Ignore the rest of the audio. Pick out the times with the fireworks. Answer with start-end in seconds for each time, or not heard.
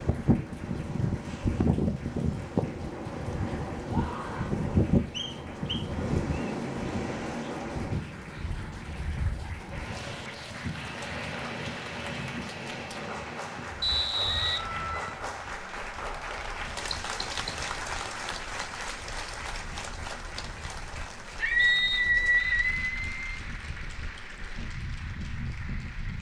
not heard.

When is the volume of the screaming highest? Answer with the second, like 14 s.
22 s.